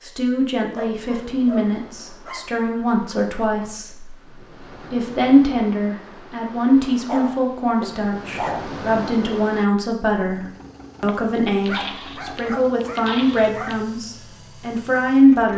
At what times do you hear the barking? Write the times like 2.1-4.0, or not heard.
0.8-2.5, 7.0-8.8, 11.1-13.8.